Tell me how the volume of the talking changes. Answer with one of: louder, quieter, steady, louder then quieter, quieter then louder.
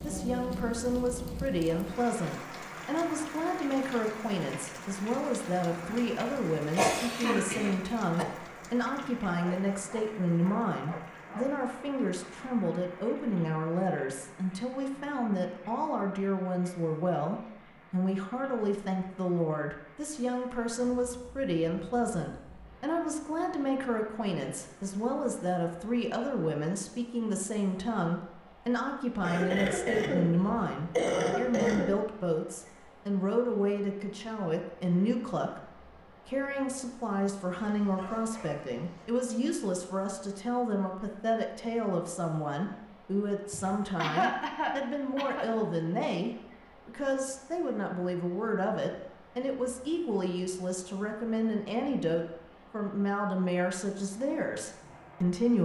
steady.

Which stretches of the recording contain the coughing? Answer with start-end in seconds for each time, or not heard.
6.8-8.2, 29.2-31.9, 43.5-45.5.